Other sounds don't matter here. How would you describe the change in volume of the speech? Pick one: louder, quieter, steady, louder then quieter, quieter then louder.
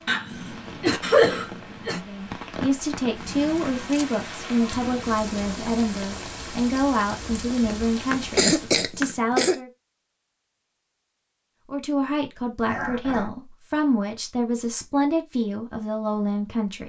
steady.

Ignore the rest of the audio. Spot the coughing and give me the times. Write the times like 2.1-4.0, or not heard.
0.1-2.0, 7.6-9.6, 12.7-13.3.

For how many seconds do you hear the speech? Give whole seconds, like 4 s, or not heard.
13 s.